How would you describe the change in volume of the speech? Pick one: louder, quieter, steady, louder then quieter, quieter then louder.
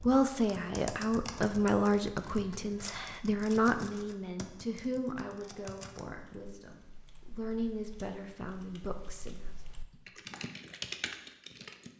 quieter then louder.